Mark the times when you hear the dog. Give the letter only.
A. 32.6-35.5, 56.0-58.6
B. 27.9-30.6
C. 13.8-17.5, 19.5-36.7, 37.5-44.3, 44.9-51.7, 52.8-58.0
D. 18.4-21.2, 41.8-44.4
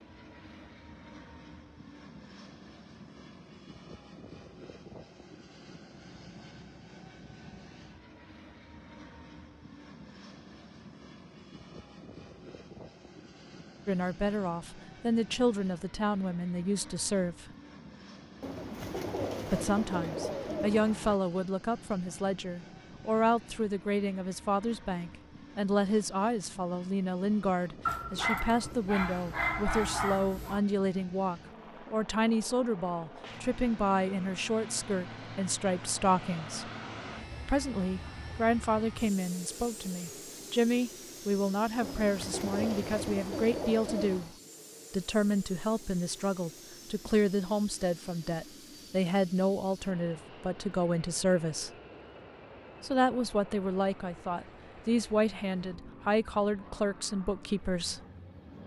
B.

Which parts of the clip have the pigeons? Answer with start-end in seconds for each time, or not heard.
18.4-21.2, 41.8-44.4.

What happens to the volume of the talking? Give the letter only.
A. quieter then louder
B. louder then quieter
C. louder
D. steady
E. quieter
D.